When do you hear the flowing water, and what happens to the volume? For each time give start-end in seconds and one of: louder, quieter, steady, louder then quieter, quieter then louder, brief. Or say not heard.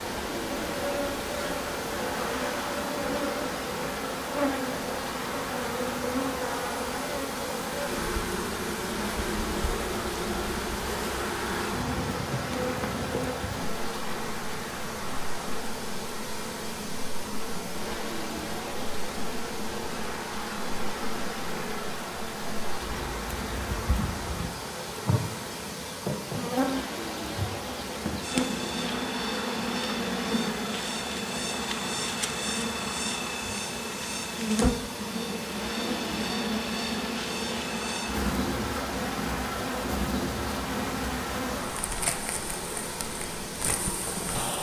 0.0-44.5 steady.